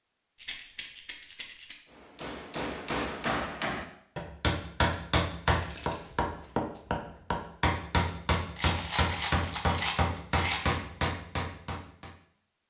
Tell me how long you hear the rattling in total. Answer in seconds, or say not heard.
4 s.